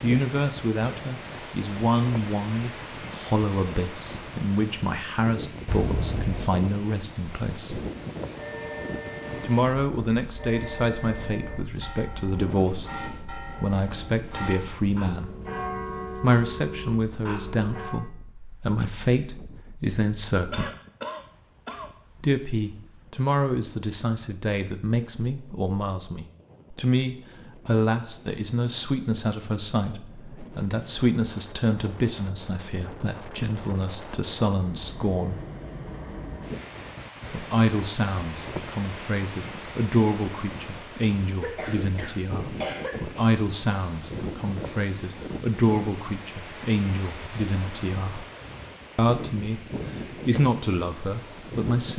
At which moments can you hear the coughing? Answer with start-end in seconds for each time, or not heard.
5.7-6.5, 20.5-21.9, 41.4-43.2.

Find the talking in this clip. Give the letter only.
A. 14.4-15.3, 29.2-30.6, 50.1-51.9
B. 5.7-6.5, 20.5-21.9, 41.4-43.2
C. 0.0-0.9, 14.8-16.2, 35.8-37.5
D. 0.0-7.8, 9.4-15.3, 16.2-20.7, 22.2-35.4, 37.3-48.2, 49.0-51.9
D.